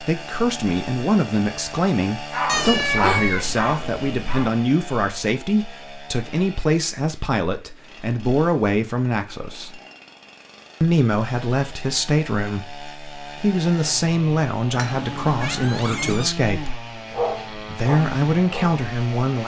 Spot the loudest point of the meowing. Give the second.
3 s.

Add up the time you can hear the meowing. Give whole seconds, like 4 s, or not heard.
4 s.